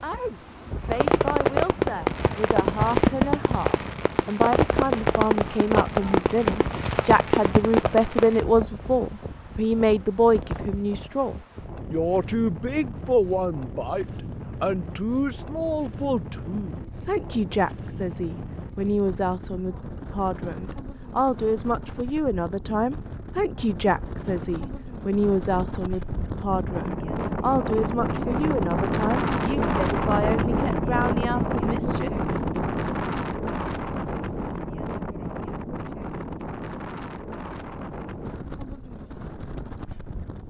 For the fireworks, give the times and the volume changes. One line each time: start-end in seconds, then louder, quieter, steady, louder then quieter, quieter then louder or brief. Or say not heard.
0.8-8.4 steady.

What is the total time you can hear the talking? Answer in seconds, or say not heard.
33 s.